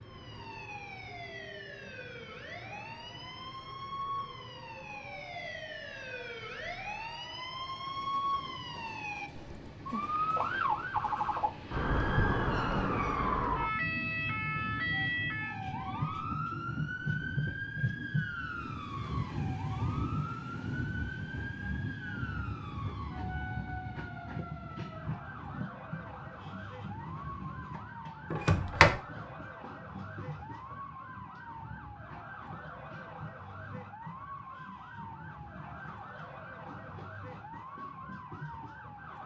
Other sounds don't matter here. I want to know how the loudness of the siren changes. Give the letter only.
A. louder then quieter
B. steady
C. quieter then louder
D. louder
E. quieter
A.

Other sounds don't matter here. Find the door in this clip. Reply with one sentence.
You can hear the door from 28.3 to 29.0 s.